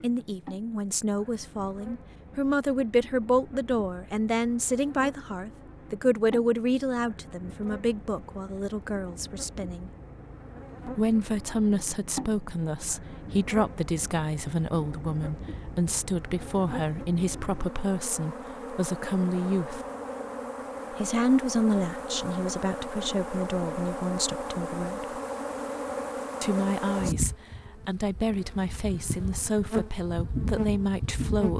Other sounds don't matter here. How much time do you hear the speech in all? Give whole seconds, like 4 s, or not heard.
28 s.